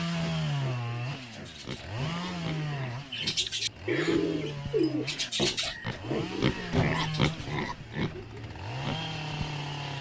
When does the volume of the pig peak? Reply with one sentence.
The volume of the pig peaks at 7 seconds.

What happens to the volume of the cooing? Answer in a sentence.
The volume of the cooing goes up, then down.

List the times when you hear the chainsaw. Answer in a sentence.
You can hear the chainsaw from 0.0 to 9.9 s.